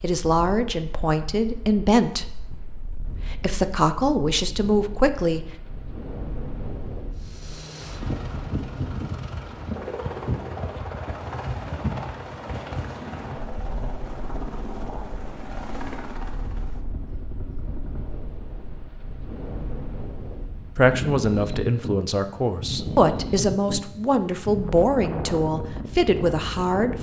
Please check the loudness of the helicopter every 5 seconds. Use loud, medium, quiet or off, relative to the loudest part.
off, loud, loud, loud, off, off.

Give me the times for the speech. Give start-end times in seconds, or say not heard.
0.0-5.5, 20.8-26.9.